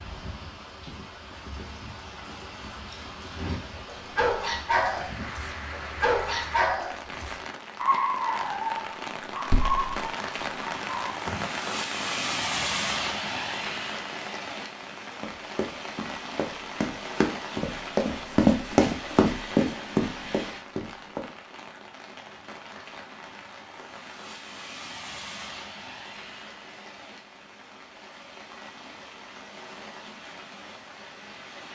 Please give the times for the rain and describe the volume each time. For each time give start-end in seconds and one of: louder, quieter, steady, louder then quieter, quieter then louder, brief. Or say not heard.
0.0-31.6 louder then quieter.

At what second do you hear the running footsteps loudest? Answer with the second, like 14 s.
19 s.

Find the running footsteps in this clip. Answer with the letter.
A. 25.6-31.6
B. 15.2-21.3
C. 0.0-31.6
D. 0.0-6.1
B.